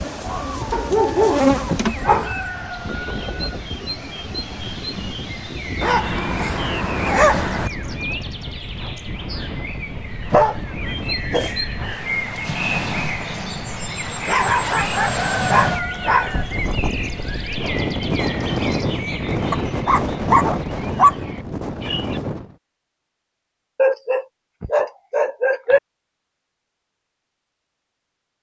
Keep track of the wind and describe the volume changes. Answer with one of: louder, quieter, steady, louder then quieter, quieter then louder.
louder.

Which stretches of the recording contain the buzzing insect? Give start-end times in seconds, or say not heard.
0.0-2.0.